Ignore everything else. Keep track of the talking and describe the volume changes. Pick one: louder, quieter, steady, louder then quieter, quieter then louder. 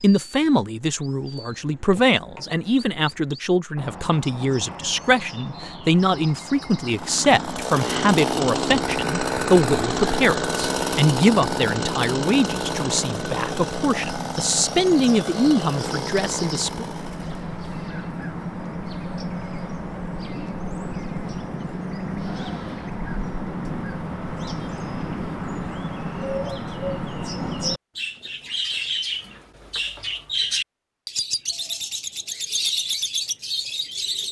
steady.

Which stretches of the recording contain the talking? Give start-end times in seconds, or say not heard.
0.0-16.9.